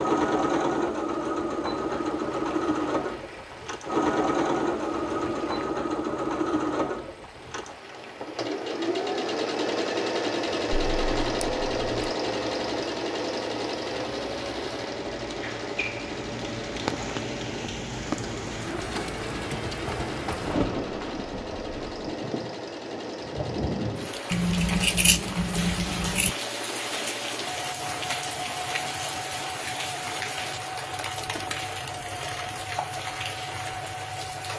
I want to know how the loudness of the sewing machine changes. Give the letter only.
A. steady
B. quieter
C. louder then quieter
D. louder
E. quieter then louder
B.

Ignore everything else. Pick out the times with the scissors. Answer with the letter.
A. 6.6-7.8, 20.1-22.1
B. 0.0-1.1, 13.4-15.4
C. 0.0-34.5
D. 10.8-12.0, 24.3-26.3
D.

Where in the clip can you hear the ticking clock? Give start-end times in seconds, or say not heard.
not heard.